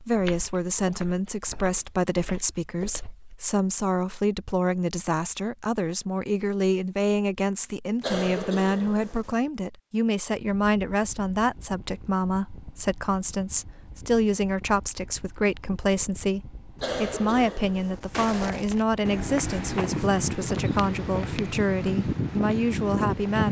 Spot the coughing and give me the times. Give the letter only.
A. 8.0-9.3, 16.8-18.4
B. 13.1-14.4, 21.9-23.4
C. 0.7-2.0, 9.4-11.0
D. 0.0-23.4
A.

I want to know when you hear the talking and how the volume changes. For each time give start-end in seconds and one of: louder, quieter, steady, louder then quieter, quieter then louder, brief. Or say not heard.
0.0-23.4 steady.